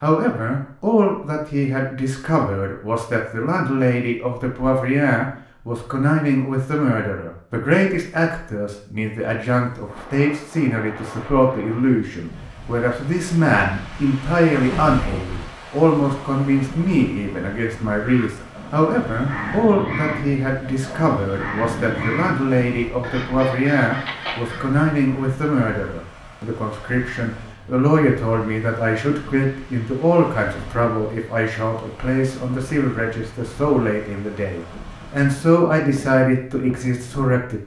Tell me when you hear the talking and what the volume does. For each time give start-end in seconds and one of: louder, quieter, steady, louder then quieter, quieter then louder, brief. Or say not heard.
0.0-37.6 steady.